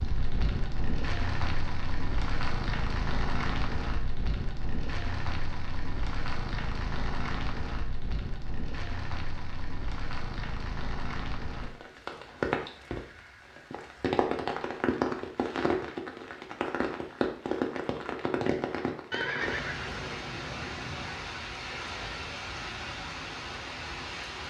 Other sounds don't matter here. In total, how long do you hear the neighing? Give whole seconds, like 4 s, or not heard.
2 s.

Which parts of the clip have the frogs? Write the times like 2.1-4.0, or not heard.
not heard.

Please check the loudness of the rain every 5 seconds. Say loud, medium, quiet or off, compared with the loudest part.
loud, medium, loud, loud, medium.